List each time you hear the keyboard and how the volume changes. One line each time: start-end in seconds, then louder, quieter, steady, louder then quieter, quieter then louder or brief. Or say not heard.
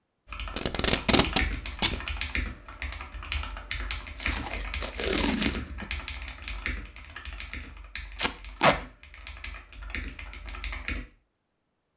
0.2-11.1 quieter.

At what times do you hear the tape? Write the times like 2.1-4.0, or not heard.
0.5-2.0, 4.2-5.8, 8.2-8.8.